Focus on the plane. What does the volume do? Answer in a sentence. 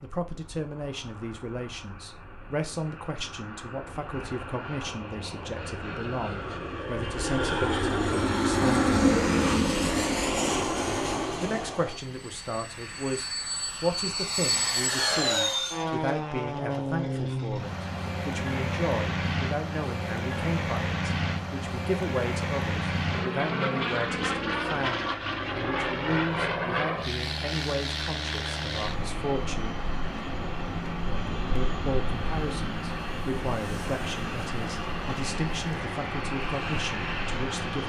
The volume of the plane goes up, then down.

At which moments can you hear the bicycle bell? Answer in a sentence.
The bicycle bell can't be heard in this clip.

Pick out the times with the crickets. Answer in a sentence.
You can't hear the crickets here.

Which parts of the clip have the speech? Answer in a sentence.
The speech can be heard from 0.0 to 8.9 s, from 11.4 to 29.9 s and from 31.6 to 37.8 s.